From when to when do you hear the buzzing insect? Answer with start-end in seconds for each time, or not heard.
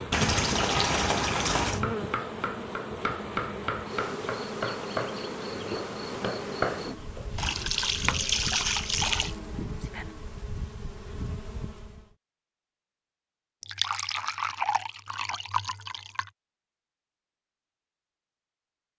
0.0-12.2.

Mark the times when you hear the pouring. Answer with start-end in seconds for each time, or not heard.
0.1-1.9, 7.3-9.3, 13.6-16.3.